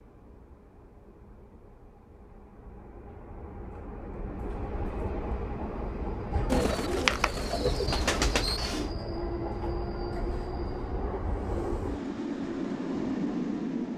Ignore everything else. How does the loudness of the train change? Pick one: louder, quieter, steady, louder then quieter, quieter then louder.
louder.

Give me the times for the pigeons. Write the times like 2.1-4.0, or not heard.
6.5-8.9.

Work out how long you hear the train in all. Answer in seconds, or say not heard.
14 s.